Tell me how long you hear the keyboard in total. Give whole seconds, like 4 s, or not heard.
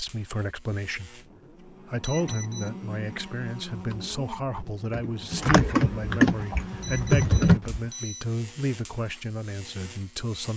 4 s.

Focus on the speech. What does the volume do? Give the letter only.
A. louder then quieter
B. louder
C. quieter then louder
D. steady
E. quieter
D.